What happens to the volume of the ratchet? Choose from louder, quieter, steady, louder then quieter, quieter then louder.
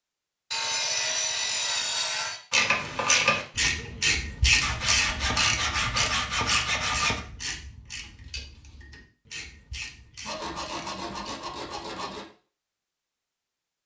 quieter.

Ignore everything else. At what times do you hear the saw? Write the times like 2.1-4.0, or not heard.
0.5-2.4, 4.6-7.2, 10.2-12.2.